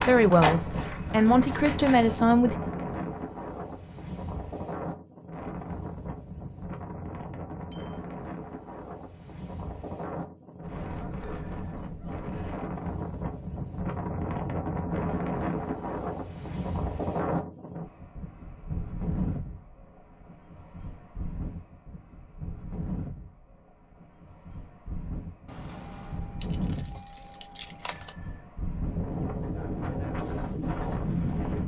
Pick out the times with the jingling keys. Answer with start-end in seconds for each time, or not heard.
25.4-28.1.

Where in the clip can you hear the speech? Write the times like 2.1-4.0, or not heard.
0.0-2.5.